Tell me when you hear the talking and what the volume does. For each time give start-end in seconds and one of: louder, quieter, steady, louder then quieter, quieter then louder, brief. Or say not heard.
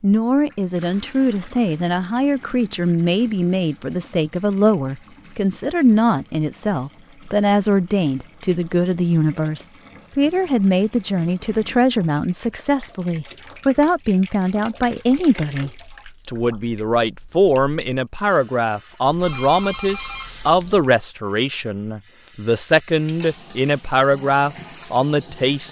0.0-25.6 steady.